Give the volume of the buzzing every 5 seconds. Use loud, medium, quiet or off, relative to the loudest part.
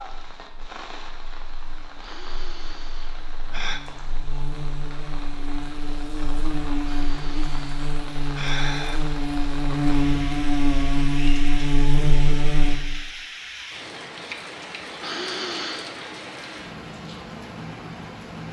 quiet, medium, loud, off.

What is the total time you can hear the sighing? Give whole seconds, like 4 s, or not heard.
5 s.